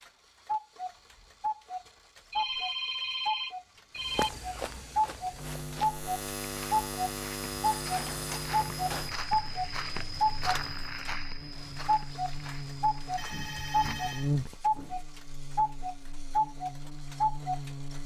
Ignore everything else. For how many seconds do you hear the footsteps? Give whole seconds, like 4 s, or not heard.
11 s.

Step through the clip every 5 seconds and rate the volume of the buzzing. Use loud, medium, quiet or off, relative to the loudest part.
off, loud, loud, medium.